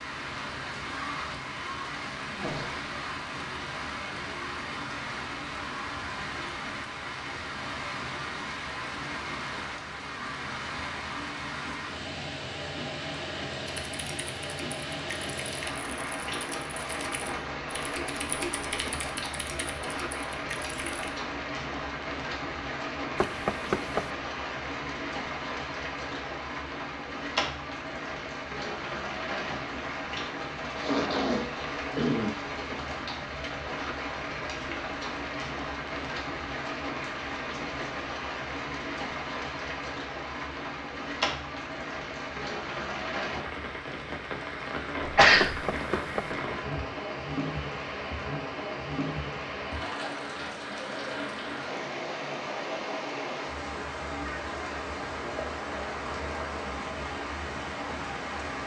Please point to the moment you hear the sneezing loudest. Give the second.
45 s.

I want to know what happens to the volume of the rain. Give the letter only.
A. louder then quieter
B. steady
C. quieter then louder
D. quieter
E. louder
B.